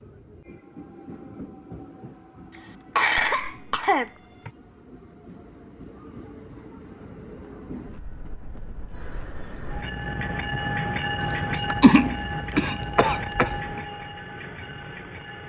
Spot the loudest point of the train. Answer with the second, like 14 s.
11 s.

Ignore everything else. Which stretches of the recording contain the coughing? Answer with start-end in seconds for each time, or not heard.
3.0-4.5, 11.2-13.8.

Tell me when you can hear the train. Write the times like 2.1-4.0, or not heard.
0.0-15.4.